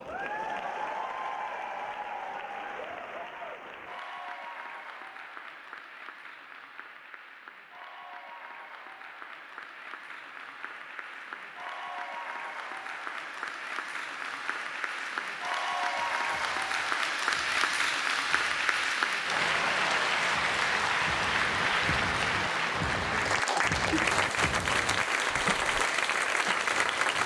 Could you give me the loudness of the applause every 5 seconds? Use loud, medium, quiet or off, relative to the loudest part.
medium, quiet, medium, loud, loud, loud.